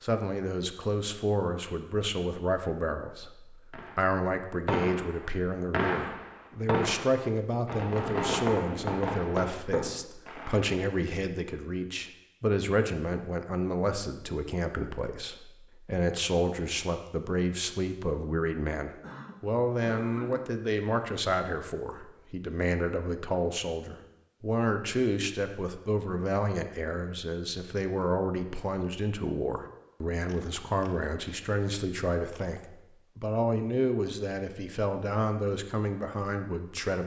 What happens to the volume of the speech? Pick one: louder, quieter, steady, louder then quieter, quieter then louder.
steady.